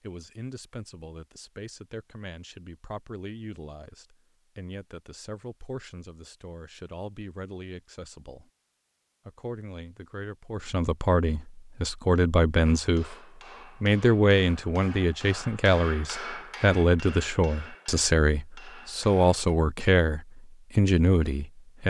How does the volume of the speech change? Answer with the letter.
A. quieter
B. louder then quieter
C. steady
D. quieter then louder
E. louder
E.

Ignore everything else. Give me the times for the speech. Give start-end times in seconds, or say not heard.
0.0-8.5, 9.2-13.2, 13.8-21.8.